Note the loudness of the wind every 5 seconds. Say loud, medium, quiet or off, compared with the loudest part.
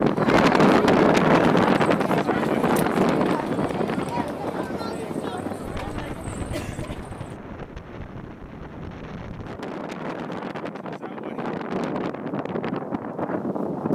loud, quiet, medium.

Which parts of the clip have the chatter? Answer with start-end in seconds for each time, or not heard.
0.0-7.3.